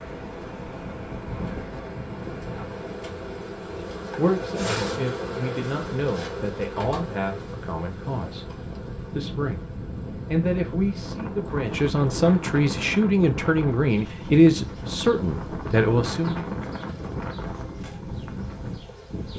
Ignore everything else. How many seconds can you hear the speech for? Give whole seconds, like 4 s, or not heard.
13 s.